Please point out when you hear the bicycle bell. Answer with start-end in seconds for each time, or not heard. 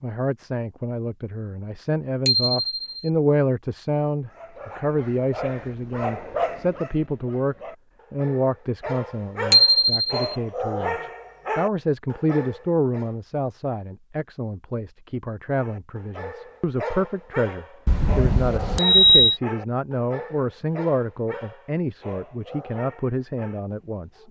2.2-2.9, 9.5-10.2, 17.9-19.4.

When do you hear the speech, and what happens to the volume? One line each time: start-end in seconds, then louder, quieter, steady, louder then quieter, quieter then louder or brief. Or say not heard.
0.0-24.2 steady.